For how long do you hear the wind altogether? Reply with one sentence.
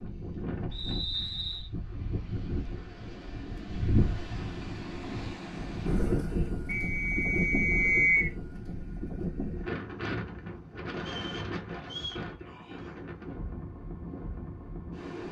The wind can be heard for 15 seconds in total.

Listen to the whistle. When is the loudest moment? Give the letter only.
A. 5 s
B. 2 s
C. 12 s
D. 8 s
D.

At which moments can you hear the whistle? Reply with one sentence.
The whistle can be heard from 0.7 to 1.7 s, from 6.7 to 8.3 s and from 11.0 to 12.2 s.